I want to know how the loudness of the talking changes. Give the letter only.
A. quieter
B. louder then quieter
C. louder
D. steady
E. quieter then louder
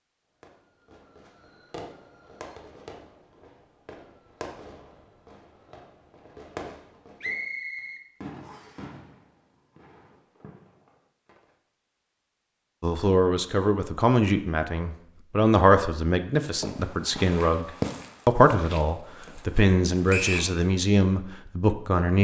D.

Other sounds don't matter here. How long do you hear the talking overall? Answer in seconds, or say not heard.
9 s.